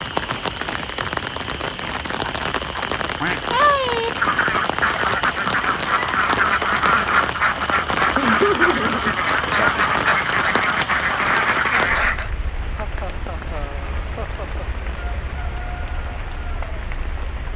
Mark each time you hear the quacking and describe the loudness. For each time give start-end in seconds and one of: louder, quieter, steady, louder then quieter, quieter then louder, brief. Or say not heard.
3.2-12.3 steady.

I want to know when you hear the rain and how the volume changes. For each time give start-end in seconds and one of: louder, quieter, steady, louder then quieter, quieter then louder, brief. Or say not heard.
0.0-17.5 quieter.